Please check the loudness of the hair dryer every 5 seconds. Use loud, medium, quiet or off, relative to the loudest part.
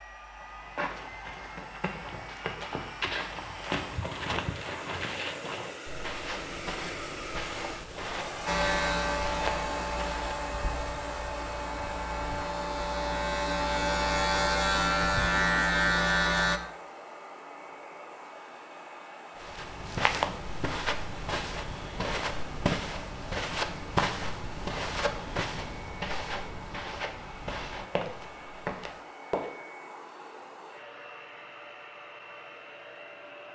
medium, loud, loud, medium, medium, medium, medium.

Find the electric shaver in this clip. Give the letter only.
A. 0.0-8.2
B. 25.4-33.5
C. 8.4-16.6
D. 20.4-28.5
C.